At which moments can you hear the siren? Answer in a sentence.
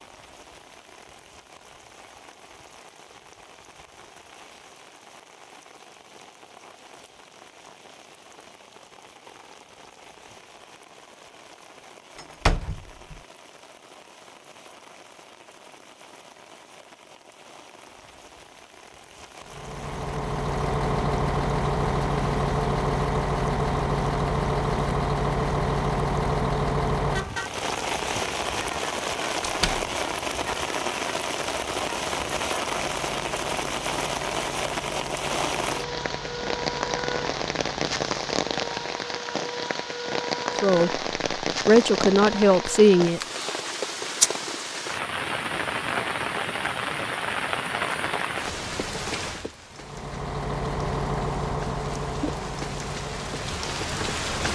You can't hear the siren here.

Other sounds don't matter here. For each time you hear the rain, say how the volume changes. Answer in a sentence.
You can hear the rain from 0.0 to 54.5 s, getting louder.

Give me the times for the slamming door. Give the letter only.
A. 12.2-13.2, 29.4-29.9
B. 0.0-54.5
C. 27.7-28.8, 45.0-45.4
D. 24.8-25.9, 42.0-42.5
A.